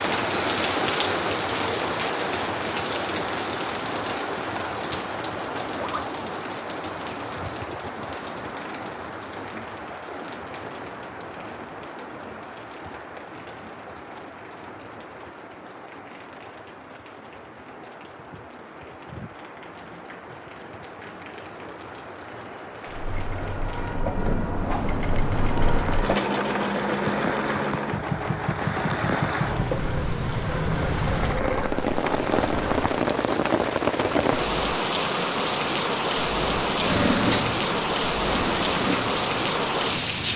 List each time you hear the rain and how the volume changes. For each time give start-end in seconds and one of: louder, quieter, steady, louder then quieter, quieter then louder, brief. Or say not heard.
0.0-40.3 quieter then louder.